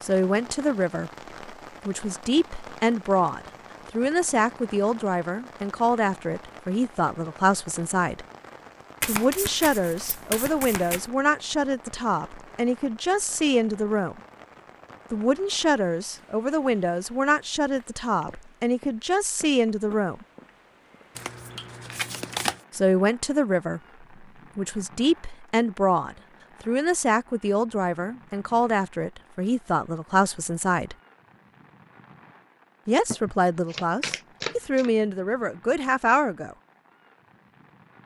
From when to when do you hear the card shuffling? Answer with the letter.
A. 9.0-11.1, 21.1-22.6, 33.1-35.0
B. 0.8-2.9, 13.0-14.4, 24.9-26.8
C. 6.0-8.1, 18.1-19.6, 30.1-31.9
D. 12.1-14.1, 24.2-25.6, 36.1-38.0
A.